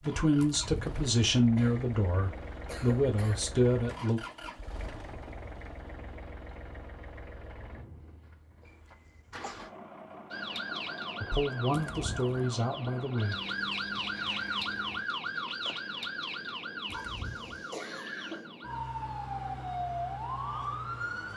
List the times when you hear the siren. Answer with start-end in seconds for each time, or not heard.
10.3-21.3.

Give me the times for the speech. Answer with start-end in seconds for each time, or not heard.
0.0-4.2, 11.2-13.3.